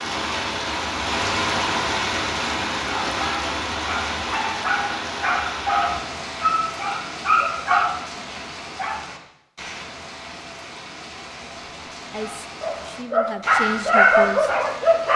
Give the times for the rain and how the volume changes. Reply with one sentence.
You can hear the rain from 0.0 to 15.1 s, getting quieter.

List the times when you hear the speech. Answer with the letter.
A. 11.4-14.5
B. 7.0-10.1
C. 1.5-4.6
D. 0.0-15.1
A.